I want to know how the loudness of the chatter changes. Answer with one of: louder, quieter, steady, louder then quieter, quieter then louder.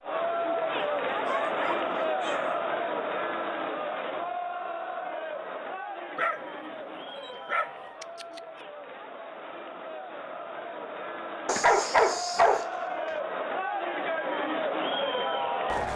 quieter then louder.